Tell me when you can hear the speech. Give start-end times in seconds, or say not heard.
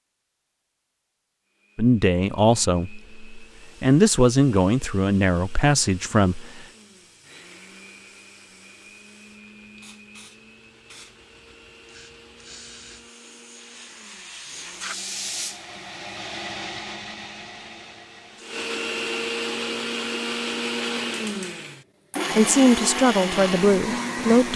1.8-6.7, 22.4-24.5.